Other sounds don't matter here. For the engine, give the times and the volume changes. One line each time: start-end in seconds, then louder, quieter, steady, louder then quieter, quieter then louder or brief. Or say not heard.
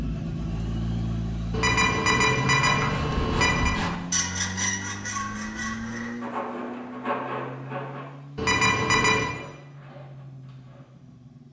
0.0-11.4 quieter.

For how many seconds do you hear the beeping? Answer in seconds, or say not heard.
3 s.